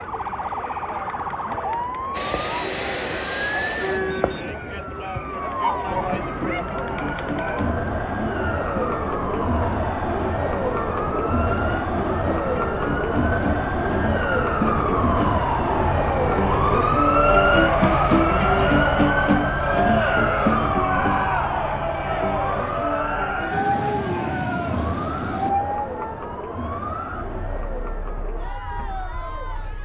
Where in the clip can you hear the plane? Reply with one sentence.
The plane can be heard from 2.1 to 4.5 s and from 23.5 to 25.6 s.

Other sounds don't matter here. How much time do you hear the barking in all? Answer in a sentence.
You can't hear the barking here.